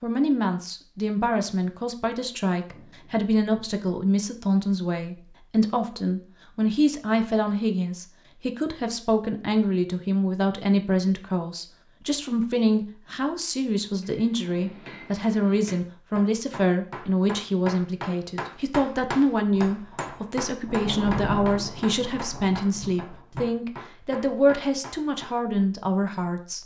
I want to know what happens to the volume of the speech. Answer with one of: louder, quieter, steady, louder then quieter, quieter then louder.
steady.